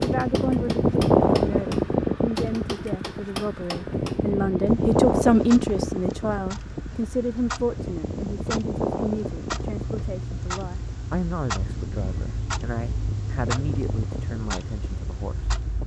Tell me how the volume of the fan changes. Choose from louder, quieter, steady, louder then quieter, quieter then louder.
quieter.